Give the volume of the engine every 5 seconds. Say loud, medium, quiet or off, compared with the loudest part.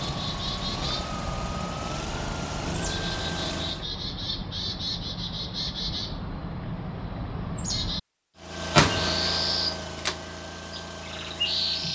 loud, loud, medium.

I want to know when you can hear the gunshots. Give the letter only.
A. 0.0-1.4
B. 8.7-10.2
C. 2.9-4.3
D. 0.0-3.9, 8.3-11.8
B.